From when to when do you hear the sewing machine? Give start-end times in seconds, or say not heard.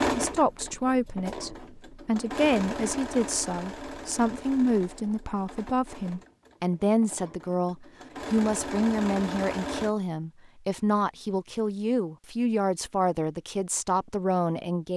0.0-9.9.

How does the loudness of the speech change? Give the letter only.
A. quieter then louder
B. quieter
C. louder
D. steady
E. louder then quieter
D.